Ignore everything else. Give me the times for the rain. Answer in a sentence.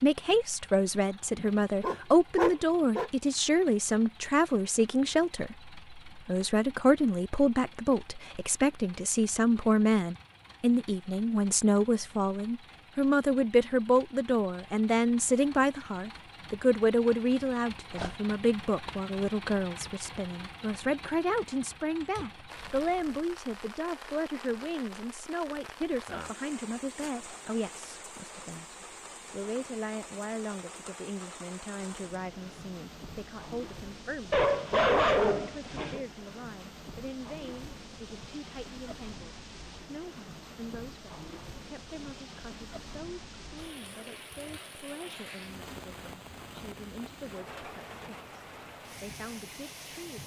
You can hear the rain from 22.4 to 50.2 s.